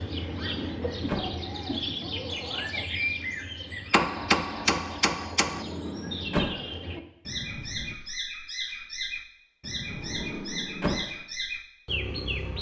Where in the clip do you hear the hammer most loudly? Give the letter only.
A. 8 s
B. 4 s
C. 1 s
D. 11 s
B.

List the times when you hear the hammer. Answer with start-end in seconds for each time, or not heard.
3.9-5.7.